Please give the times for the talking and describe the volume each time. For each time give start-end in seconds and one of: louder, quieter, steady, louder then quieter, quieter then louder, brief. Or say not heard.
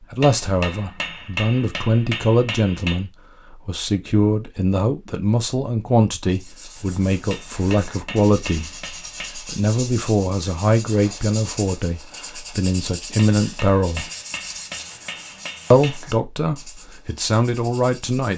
0.0-14.1 steady
15.7-18.3 brief.